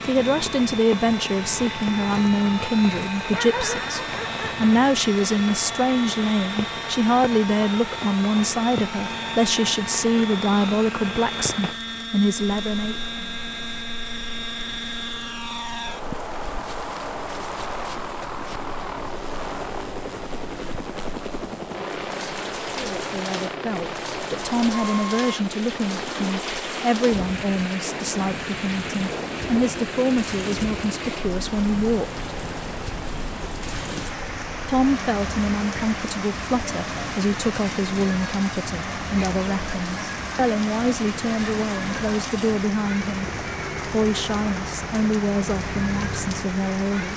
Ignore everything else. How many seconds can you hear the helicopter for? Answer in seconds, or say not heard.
47 s.